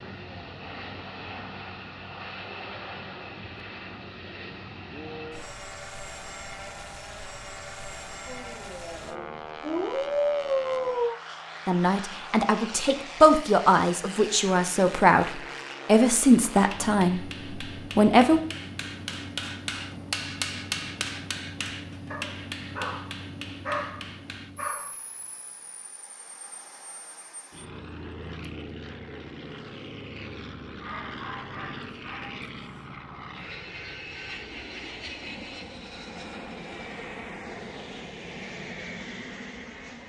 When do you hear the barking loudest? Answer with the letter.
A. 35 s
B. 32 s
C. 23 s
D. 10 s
D.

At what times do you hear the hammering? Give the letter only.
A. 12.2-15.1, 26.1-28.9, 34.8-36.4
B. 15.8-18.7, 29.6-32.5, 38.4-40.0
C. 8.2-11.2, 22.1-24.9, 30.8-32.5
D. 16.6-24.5
D.